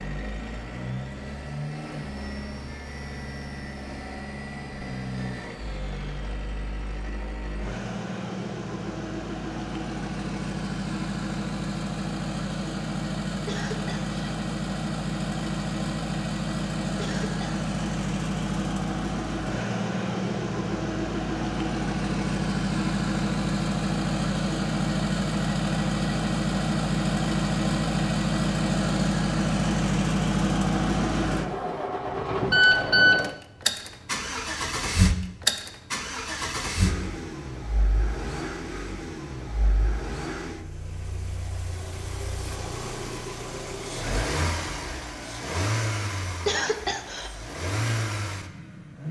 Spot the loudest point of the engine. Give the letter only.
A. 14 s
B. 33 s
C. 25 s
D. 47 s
B.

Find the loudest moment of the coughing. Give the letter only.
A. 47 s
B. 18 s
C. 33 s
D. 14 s
A.